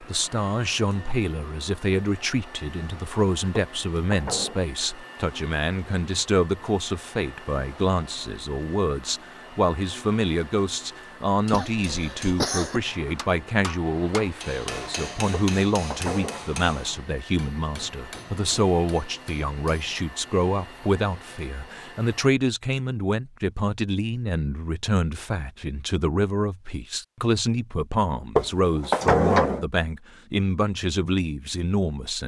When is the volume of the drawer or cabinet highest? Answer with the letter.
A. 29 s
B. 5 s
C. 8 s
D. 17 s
A.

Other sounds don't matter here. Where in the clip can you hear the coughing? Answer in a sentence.
You can hear the coughing from 11.5 to 12.8 s.